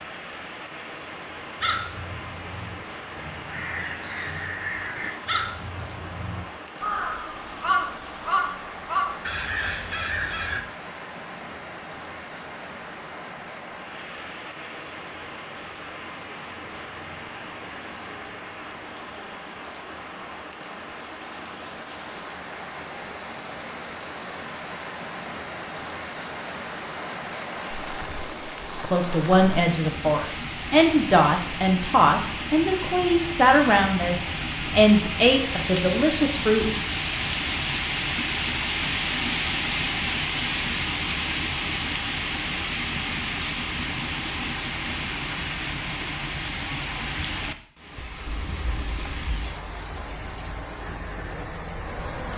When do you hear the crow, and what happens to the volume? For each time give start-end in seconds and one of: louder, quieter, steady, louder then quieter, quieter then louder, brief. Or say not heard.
1.6-10.6 louder.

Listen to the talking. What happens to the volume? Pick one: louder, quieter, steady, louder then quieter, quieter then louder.
steady.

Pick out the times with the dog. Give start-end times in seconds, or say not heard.
not heard.